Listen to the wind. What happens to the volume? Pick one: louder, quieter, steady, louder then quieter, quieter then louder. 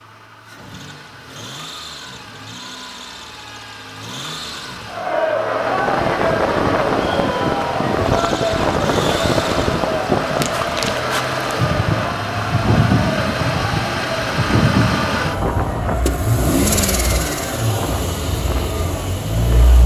quieter.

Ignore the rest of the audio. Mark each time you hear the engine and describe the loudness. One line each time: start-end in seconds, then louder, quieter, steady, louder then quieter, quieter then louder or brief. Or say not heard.
0.0-19.8 louder.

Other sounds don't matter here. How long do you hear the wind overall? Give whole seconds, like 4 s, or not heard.
14 s.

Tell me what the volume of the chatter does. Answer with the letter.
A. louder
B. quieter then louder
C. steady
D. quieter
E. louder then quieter
D.